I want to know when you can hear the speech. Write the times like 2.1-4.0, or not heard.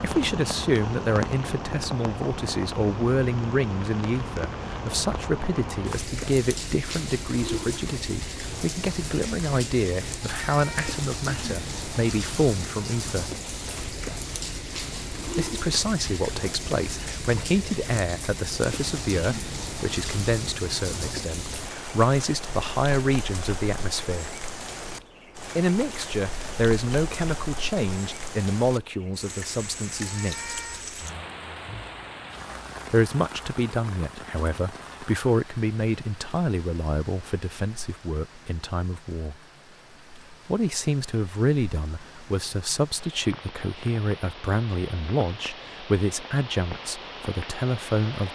0.0-13.3, 15.3-24.4, 25.6-30.6, 32.9-39.4, 40.5-48.2.